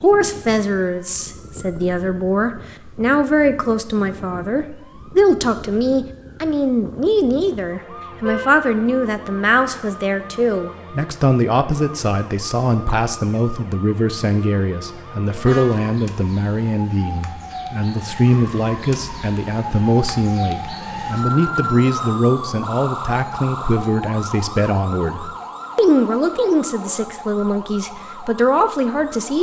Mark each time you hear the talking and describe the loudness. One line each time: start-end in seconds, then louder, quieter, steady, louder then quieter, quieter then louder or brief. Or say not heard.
0.0-29.3 steady.